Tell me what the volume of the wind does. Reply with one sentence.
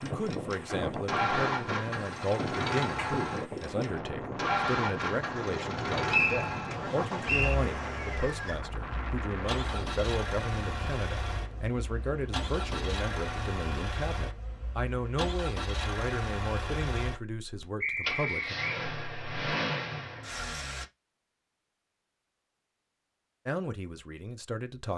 The loudness of the wind goes down.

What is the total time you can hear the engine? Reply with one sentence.
You can hear the engine for 21 seconds altogether.